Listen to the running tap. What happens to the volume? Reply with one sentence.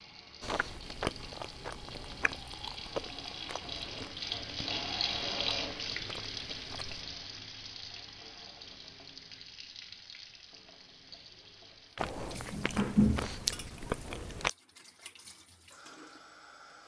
The volume of the running tap goes up, then down.